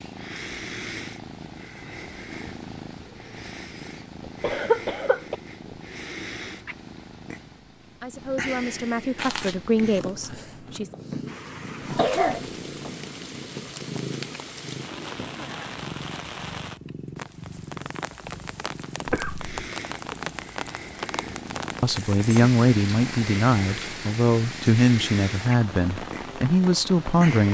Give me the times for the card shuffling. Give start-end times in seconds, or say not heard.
9.2-10.8.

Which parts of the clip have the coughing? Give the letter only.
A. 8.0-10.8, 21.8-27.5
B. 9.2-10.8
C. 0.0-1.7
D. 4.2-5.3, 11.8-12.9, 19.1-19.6
D.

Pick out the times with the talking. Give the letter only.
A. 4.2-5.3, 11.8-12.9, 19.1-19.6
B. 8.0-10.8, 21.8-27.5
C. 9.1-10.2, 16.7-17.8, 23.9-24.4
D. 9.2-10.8
B.